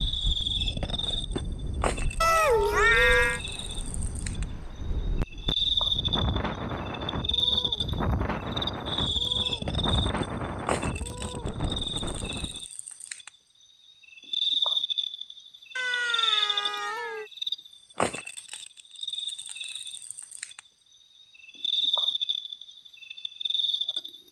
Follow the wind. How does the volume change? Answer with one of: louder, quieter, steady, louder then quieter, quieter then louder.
louder.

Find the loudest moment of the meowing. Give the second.
3 s.